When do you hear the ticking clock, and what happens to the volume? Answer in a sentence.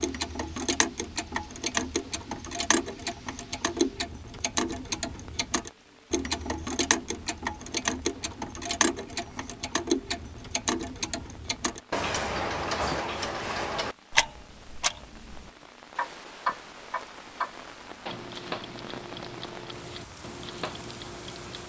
You can hear the ticking clock from 0.0 to 21.6 s, getting quieter.